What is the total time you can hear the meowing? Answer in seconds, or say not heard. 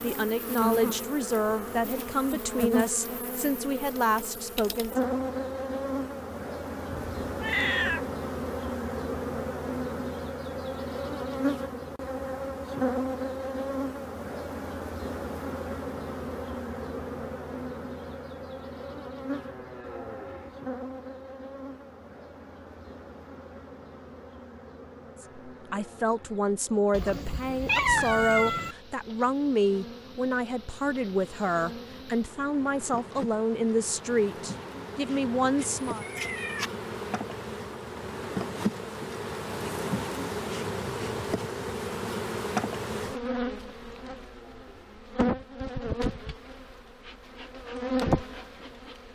4 s.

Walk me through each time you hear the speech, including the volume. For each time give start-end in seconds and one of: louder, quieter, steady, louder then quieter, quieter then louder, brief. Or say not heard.
0.0-5.0 steady
25.2-36.0 steady.